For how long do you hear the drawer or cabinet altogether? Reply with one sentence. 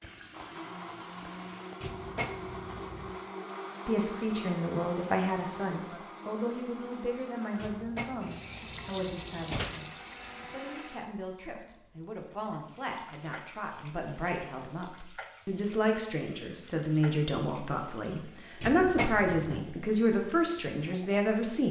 You can hear the drawer or cabinet for 5 seconds altogether.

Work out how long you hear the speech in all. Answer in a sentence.
You can hear the speech for 18 seconds altogether.